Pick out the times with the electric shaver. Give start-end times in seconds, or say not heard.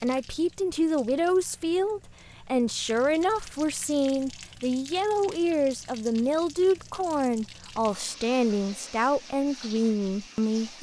not heard.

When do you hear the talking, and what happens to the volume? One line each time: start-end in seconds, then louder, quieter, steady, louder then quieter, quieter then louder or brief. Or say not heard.
0.0-10.7 steady.